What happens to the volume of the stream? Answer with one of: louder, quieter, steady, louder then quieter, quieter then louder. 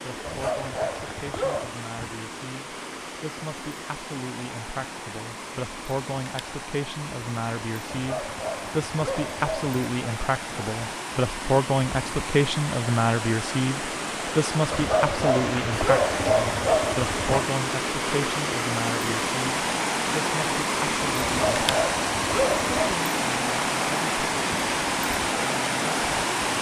louder.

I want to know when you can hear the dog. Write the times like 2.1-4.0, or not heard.
0.2-1.8, 7.9-9.8, 14.7-17.4, 21.2-22.9.